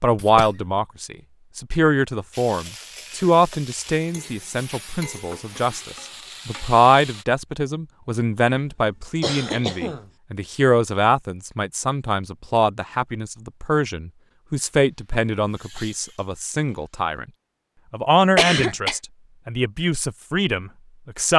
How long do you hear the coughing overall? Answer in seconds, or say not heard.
2 s.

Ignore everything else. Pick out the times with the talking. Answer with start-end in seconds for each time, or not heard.
0.0-17.2, 17.9-21.3.